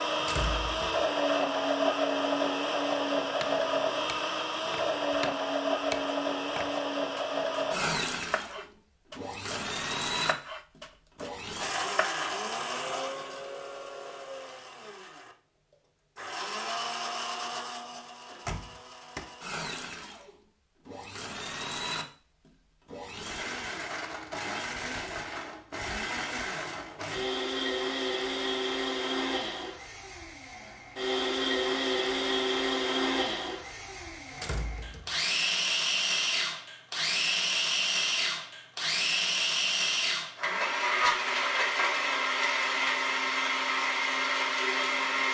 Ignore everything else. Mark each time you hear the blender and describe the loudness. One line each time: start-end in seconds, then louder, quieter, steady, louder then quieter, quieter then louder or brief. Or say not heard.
0.0-45.2 quieter then louder.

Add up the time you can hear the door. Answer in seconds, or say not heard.
3 s.